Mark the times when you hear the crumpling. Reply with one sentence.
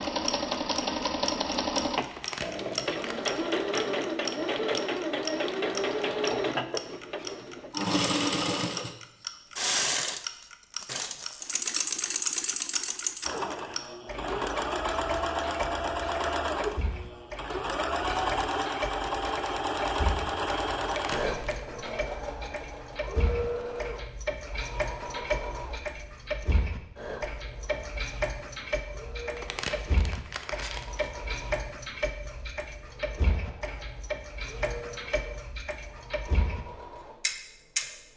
You can hear the crumpling from 2.1 to 3.2 s, from 20.8 to 21.6 s and from 29.4 to 31.1 s.